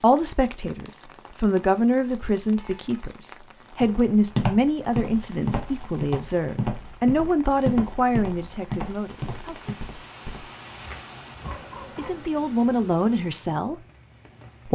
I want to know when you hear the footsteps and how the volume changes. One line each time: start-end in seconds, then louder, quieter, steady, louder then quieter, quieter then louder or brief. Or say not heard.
3.8-12.2 quieter.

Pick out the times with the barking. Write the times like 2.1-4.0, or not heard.
11.4-12.2.